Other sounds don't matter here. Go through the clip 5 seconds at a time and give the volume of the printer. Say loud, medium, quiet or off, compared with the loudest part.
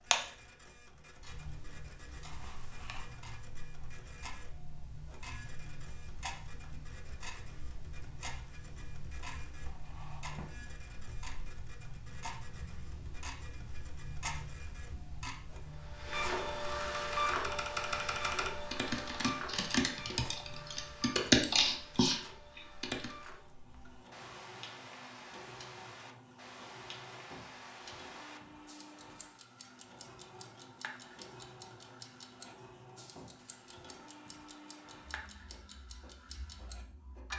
quiet, quiet, quiet, loud, quiet, quiet, quiet, quiet.